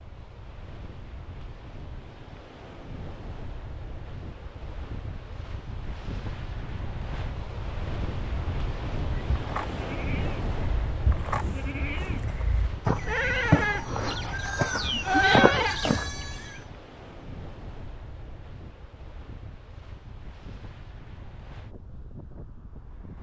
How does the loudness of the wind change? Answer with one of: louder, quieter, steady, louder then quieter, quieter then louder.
louder then quieter.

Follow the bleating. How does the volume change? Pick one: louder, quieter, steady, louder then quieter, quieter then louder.
louder.